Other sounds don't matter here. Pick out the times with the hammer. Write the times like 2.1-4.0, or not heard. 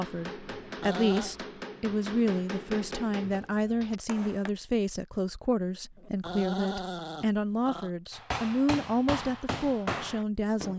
0.0-4.5, 8.1-10.7.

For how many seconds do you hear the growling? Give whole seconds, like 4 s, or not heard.
3 s.